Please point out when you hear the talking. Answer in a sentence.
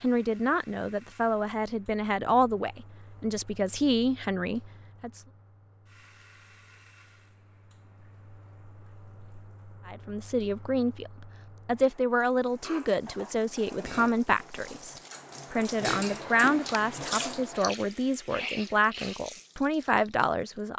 The talking can be heard from 0.0 to 5.2 s and from 9.8 to 20.7 s.